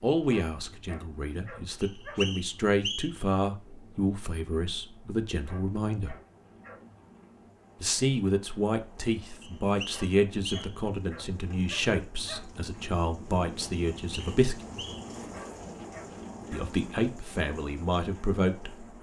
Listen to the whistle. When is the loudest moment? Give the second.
3 s.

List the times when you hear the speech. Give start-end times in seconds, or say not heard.
0.0-6.2, 7.8-14.6, 16.5-18.9.